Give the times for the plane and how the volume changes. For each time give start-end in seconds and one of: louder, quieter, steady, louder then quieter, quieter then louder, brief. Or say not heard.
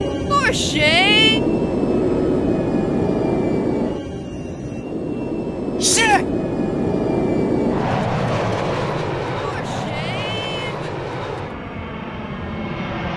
0.0-13.1 quieter.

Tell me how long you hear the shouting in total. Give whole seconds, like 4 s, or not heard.
3 s.